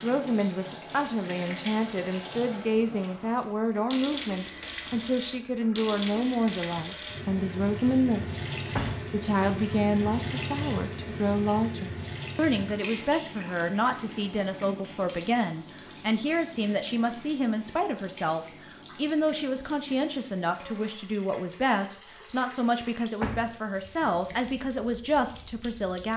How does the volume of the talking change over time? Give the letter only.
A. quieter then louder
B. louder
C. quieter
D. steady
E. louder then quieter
D.